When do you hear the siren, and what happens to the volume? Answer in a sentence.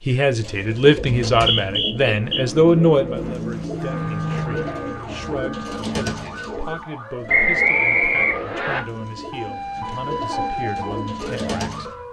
You can hear the siren from 3.8 to 12.0 s, getting louder.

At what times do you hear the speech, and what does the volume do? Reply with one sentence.
You can hear the speech from 0.1 to 11.9 s, getting quieter.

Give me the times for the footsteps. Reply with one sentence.
You can't hear the footsteps here.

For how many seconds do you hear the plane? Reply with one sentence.
You can hear the plane for 3 seconds altogether.